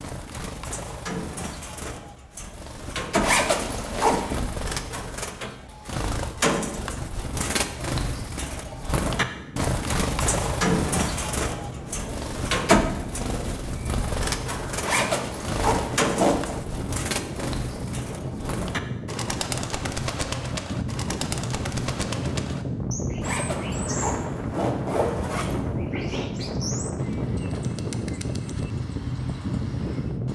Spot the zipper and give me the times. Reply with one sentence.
You can hear the zipper from 3.2 to 4.5 s, from 14.8 to 16.6 s and from 23.2 to 25.6 s.